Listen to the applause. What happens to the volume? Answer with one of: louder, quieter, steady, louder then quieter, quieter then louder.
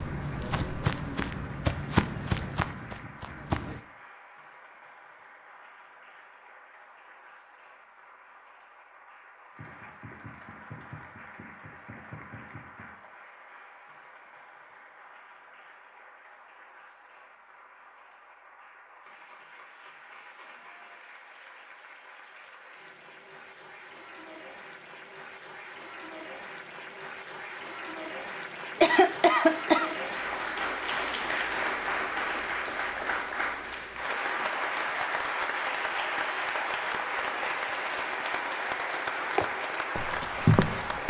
louder.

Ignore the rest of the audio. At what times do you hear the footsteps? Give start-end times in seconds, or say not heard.
0.0-3.8, 39.4-41.0.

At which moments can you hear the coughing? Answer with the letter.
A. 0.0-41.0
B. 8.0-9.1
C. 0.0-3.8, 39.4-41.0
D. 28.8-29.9
D.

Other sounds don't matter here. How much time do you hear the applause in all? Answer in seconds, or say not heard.
41 s.